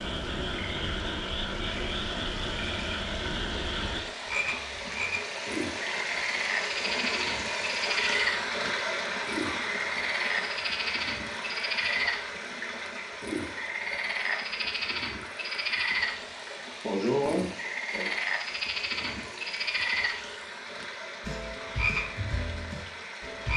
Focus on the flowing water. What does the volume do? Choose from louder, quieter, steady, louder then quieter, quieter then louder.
louder then quieter.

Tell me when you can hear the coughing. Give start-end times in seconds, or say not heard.
16.8-18.1.